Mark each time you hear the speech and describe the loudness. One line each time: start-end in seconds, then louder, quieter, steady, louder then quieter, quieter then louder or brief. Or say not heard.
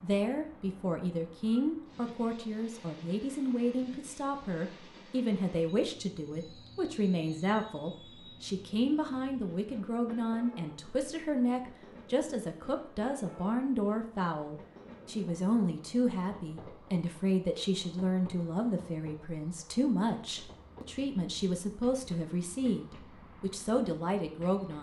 0.0-24.7 steady.